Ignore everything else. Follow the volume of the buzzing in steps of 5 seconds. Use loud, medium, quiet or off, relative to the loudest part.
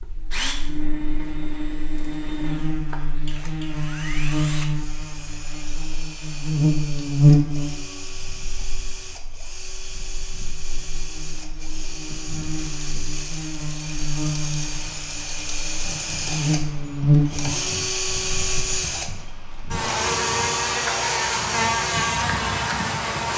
medium, loud, medium, loud, loud.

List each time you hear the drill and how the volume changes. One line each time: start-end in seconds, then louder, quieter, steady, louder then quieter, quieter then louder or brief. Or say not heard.
0.0-23.3 quieter then louder.